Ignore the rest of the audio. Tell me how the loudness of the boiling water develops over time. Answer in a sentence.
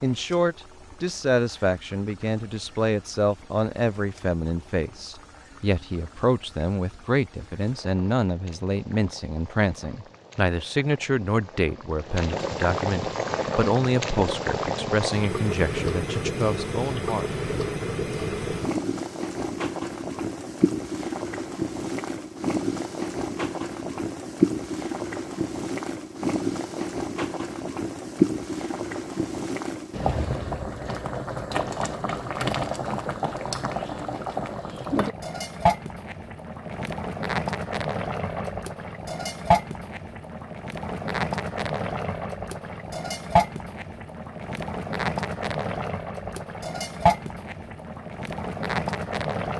The volume of the boiling water goes up.